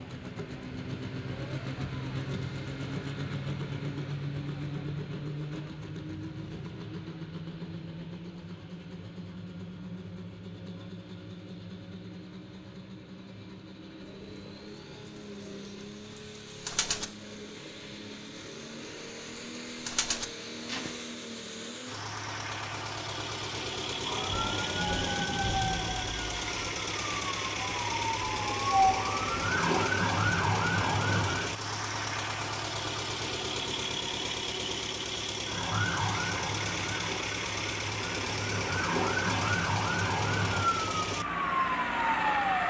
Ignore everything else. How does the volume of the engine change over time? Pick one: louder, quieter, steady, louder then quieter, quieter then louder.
quieter then louder.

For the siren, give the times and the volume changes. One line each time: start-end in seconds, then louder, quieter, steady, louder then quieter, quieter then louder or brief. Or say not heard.
24.0-31.5 quieter then louder
35.5-42.6 quieter then louder.